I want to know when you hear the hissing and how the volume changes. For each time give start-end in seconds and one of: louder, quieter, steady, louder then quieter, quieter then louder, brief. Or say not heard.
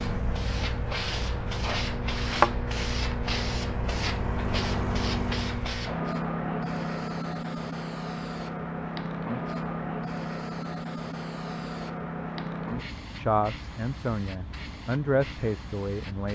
0.0-16.3 quieter.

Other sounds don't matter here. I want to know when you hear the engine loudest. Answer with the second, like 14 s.
5 s.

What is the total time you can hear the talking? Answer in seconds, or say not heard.
3 s.